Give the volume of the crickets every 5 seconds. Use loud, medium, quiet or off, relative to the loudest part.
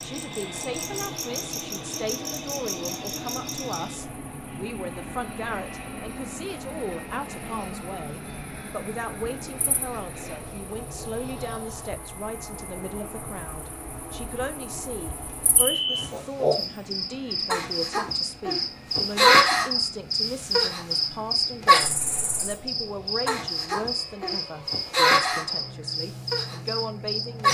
quiet, quiet, quiet, loud, loud, loud.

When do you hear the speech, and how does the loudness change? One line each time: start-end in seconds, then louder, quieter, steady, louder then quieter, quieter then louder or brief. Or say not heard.
0.0-27.4 steady.